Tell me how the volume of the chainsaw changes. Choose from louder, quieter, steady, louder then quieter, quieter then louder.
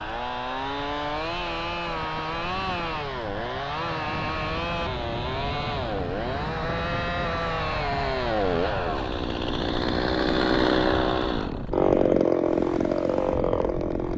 louder.